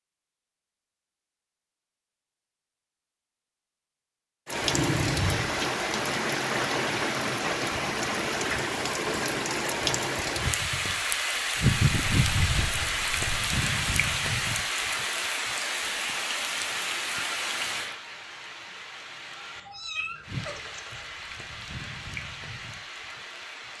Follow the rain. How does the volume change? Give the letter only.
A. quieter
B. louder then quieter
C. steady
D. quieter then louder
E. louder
A.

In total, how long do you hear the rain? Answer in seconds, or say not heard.
19 s.